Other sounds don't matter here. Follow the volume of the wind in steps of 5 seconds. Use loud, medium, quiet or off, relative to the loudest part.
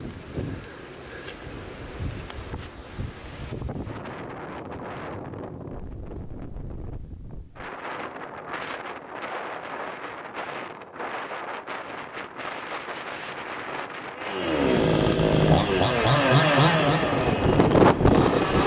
quiet, quiet, quiet, loud.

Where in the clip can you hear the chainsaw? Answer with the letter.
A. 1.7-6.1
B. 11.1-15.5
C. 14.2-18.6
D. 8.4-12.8
C.